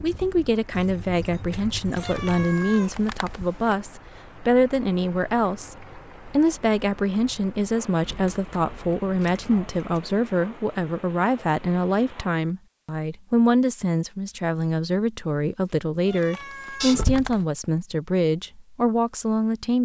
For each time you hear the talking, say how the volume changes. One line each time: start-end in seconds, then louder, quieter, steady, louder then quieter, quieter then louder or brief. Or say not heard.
0.0-19.8 steady.